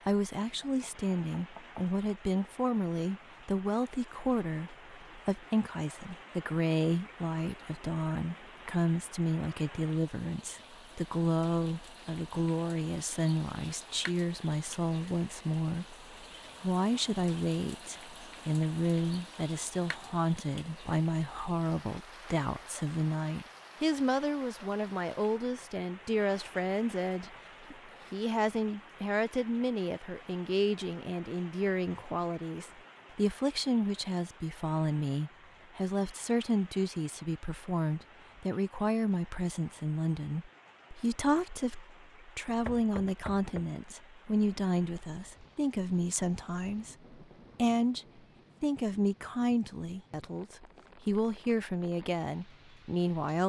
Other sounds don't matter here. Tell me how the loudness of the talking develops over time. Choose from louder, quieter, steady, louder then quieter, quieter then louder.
steady.